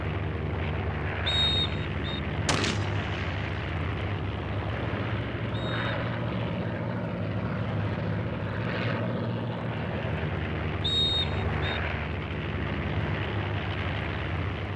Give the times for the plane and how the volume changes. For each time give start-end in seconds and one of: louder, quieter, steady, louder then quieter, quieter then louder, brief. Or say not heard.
0.0-14.7 steady.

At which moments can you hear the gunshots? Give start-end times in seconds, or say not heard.
2.5-3.7.